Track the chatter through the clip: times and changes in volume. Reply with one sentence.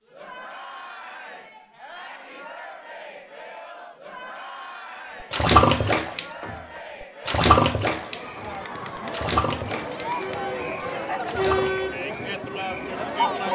You can hear the chatter from 0.1 to 13.4 s, getting louder.